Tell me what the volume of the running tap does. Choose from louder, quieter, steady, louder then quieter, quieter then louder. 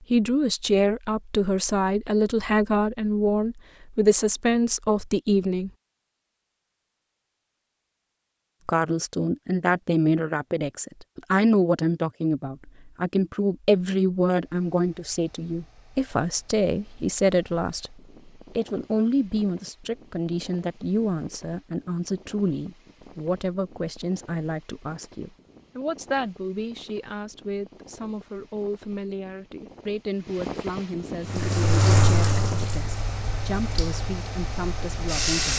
quieter.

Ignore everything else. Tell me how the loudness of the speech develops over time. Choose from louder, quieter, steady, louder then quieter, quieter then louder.
quieter.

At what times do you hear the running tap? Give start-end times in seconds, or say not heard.
31.2-35.5.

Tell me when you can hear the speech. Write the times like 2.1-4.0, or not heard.
0.1-5.7, 8.7-35.5.